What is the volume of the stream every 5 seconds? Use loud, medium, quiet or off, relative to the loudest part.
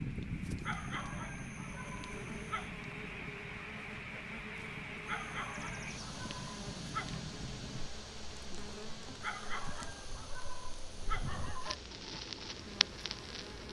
loud, loud, medium.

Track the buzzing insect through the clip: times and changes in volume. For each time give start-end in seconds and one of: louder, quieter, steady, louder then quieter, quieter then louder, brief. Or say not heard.
0.0-13.6 steady.